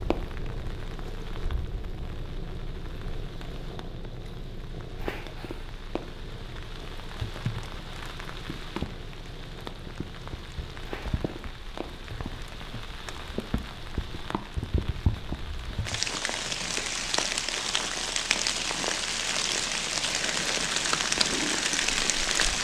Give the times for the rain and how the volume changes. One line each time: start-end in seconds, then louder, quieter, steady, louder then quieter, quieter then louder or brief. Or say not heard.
0.0-22.5 louder.